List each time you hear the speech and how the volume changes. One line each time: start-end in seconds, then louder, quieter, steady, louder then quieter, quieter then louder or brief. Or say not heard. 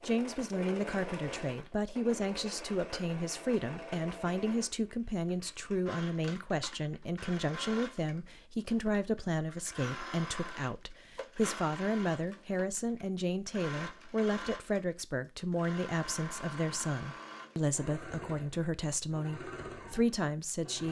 0.0-20.8 steady.